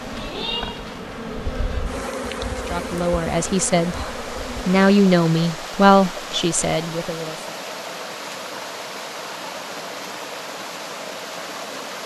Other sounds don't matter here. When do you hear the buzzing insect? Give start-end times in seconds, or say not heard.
0.0-4.8.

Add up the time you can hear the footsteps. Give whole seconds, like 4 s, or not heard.
not heard.